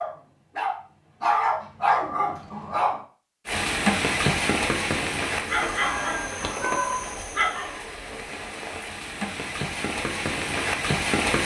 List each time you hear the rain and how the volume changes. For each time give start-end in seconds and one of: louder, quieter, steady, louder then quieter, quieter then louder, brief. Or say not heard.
3.5-11.3 quieter then louder.